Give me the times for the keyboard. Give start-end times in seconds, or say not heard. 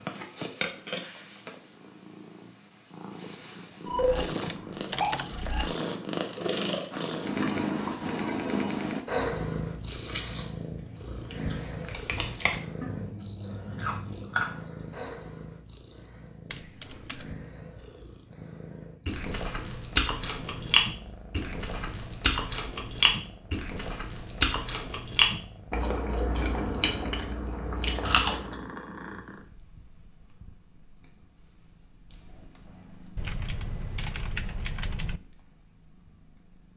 4.5-5.3, 16.5-17.4, 33.1-35.2.